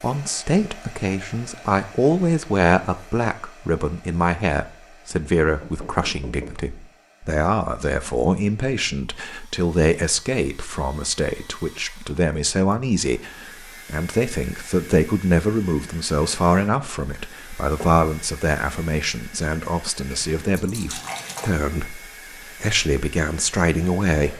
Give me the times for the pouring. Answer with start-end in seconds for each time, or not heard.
20.1-21.6.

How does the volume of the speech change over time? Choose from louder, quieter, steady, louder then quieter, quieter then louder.
steady.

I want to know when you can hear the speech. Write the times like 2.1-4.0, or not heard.
0.0-24.3.